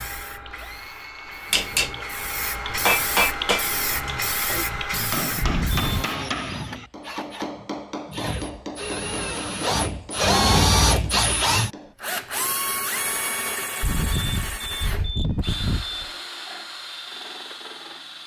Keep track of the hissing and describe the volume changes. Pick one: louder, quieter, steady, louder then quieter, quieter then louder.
louder.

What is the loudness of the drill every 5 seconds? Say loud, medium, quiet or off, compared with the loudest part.
quiet, medium, loud, quiet.